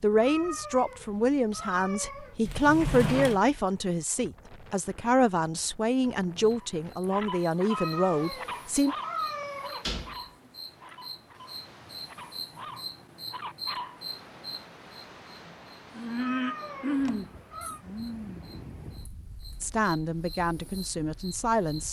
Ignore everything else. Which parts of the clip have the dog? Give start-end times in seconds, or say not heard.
6.5-14.0.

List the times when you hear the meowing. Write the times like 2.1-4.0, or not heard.
0.2-2.4, 7.7-9.8, 16.1-17.8.